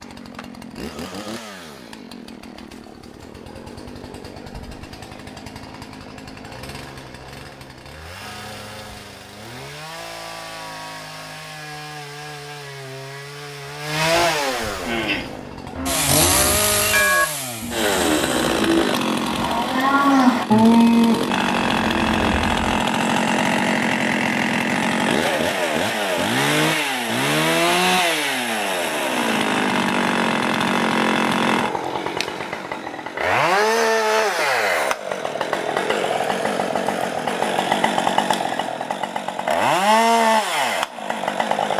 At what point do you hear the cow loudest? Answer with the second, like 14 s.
21 s.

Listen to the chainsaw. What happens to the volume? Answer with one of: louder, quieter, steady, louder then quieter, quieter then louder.
louder.